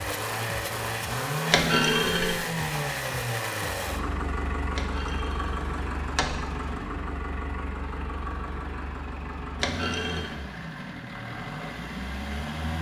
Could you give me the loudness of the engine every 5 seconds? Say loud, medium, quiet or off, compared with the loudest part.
loud, medium, medium.